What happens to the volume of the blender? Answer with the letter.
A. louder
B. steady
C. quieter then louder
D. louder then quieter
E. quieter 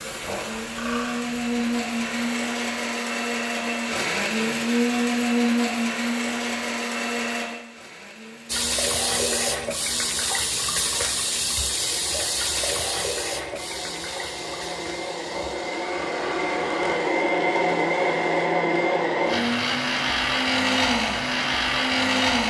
C.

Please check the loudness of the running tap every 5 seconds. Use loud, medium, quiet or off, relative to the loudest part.
quiet, loud, loud, quiet, off.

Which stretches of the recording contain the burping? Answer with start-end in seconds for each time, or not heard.
0.2-1.2, 15.3-17.1.